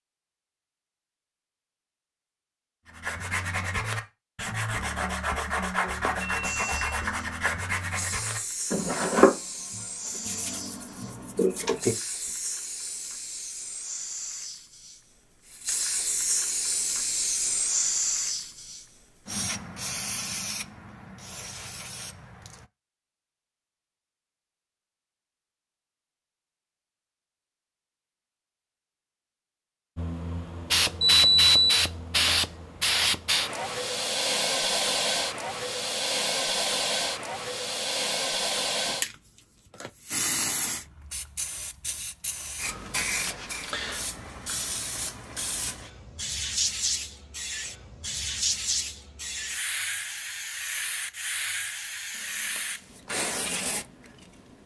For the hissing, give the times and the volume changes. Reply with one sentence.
The hissing can be heard from 6.4 to 22.6 s, getting louder then quieter; and from 29.9 to 54.6 s, getting quieter.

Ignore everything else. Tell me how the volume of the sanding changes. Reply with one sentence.
The loudness of the sanding goes up, then down.